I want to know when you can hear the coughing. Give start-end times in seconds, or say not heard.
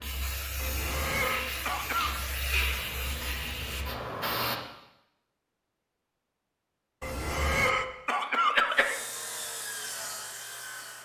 0.6-2.2, 7.0-8.9.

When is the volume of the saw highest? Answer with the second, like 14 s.
10 s.